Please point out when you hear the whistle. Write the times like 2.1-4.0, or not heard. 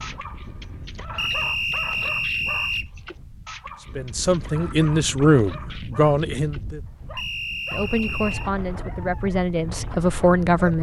1.1-2.9, 7.2-8.5.